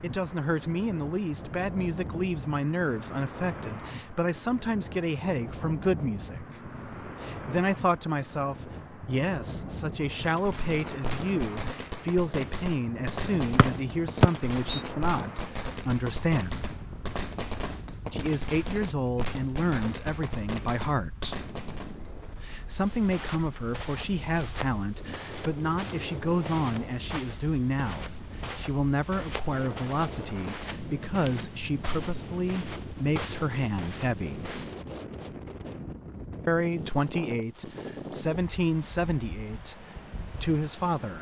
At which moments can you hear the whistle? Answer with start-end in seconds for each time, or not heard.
13.6-14.8.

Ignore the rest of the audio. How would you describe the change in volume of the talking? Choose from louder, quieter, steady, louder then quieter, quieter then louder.
steady.